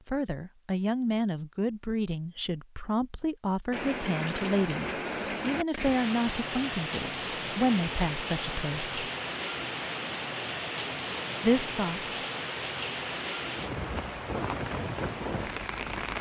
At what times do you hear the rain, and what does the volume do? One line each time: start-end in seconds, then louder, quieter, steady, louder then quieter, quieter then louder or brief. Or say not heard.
3.7-16.1 steady.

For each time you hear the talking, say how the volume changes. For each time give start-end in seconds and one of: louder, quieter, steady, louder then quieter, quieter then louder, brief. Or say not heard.
0.1-9.1 steady
11.4-12.1 brief.